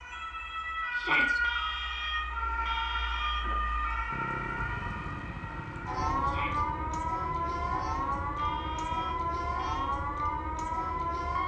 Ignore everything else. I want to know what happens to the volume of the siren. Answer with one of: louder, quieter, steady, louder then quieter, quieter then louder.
steady.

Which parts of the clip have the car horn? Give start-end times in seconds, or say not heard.
1.4-3.6, 8.3-10.0.